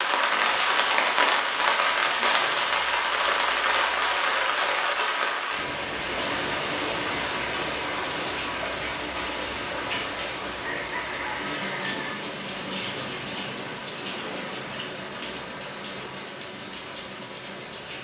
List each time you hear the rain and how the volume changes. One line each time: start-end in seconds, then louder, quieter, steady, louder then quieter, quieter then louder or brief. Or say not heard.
0.0-17.9 quieter.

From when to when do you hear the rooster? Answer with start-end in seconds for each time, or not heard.
10.6-12.2.